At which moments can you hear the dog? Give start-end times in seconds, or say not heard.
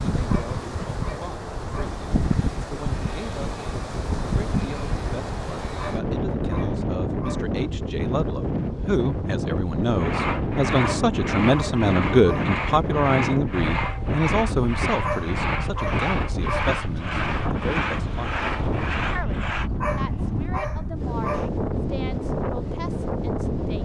0.2-2.0, 5.8-7.5, 10.8-12.5, 15.0-16.6, 19.8-21.5.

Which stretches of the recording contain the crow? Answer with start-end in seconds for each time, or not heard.
not heard.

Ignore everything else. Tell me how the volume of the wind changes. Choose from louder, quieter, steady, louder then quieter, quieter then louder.
steady.